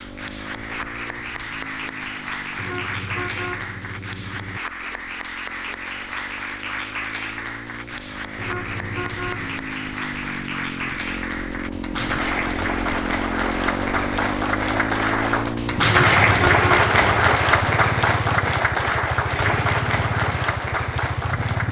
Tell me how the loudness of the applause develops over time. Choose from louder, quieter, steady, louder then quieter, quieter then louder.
louder.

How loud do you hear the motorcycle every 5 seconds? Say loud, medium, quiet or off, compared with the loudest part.
quiet, medium, loud, loud, loud.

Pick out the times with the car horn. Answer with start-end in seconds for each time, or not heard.
2.5-4.6, 8.3-9.6, 15.8-17.3.